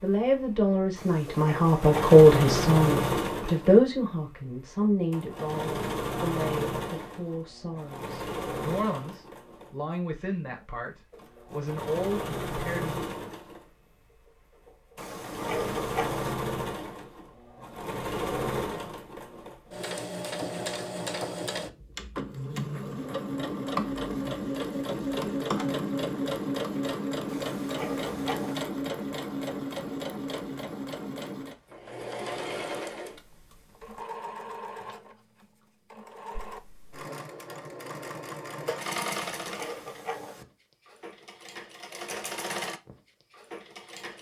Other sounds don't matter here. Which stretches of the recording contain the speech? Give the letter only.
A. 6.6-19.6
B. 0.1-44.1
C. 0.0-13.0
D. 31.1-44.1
C.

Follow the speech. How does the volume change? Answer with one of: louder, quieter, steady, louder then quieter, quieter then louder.
quieter.